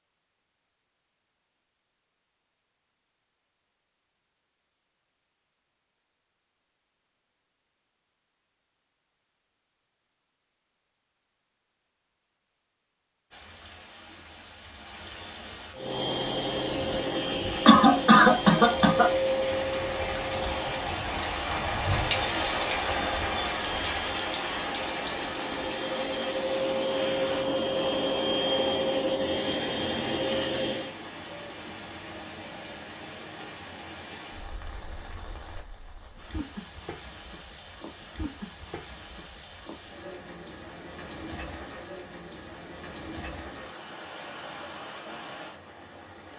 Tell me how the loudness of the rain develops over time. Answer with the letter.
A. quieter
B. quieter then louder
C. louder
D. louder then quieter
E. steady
D.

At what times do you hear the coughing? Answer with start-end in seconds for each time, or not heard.
17.6-19.1.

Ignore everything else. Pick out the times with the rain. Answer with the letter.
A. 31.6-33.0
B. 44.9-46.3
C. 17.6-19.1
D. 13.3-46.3
D.